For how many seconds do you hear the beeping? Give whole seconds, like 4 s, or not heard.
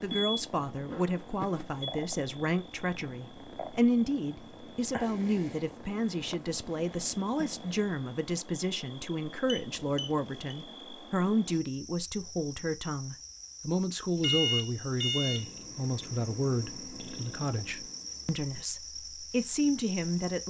4 s.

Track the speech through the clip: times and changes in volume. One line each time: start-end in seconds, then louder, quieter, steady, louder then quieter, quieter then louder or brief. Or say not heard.
0.0-20.4 steady.